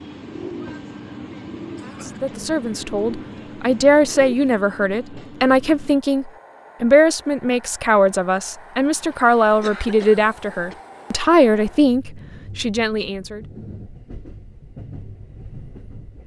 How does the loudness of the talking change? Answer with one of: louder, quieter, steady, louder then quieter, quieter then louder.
steady.